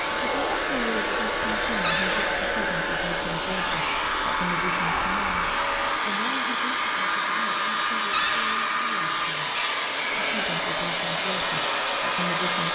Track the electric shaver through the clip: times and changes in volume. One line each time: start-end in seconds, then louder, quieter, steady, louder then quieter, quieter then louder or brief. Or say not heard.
0.0-12.6 steady.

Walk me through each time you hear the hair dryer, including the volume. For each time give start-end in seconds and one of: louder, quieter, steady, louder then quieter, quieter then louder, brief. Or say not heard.
0.0-12.6 steady.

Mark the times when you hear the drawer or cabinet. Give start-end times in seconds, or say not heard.
1.8-2.3, 8.1-8.6.